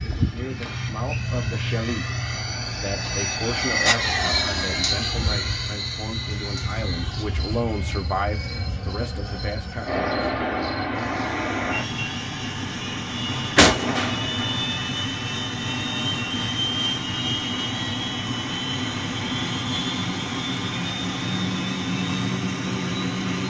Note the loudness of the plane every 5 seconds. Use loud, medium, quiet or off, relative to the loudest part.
loud, medium, loud, loud, loud.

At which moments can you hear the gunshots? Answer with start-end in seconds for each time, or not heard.
13.6-14.3.